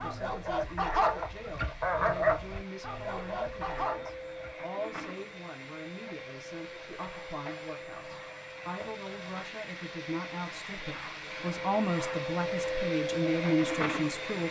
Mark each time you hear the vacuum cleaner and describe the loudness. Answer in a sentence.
You can hear the vacuum cleaner from 0.0 to 14.4 s, getting louder.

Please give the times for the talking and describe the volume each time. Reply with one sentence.
You can hear the talking from 0.0 to 14.4 s, getting louder.